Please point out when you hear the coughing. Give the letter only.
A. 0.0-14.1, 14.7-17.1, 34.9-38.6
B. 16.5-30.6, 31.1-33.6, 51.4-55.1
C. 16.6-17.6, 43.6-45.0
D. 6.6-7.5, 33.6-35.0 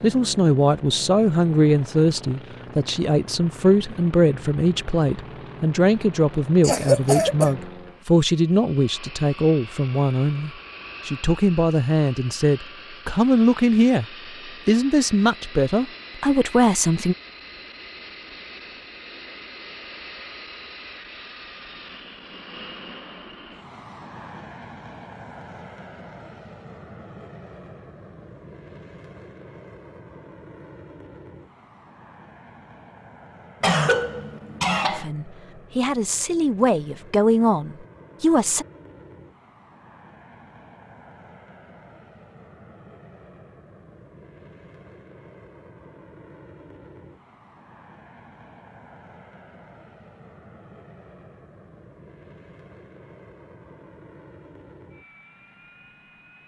D.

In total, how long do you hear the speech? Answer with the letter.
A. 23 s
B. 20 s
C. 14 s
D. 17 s
B.